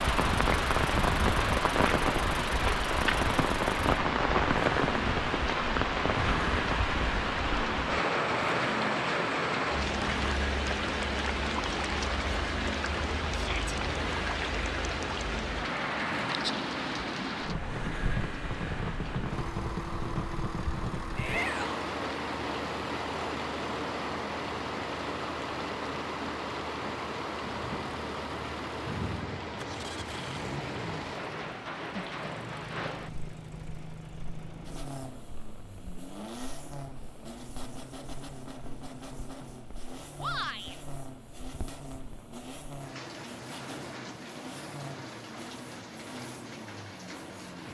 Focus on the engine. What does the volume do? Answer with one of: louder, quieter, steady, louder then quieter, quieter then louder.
quieter.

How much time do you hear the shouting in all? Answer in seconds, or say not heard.
2 s.